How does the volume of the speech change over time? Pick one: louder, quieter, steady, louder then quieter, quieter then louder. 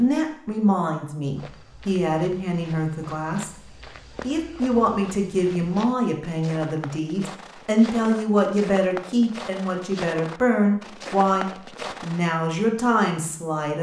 steady.